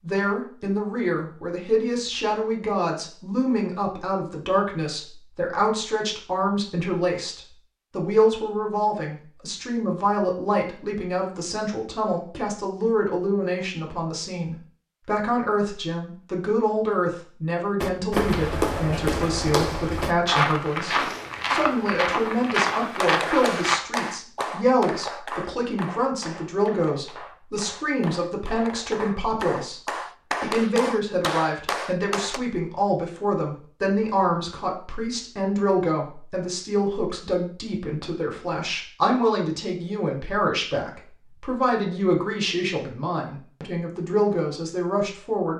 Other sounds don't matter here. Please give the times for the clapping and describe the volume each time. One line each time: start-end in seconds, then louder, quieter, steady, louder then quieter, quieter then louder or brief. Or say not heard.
23.0-32.4 quieter then louder.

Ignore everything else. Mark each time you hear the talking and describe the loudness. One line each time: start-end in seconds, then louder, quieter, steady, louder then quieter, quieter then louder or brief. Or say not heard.
0.0-45.5 steady.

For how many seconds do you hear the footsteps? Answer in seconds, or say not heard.
6 s.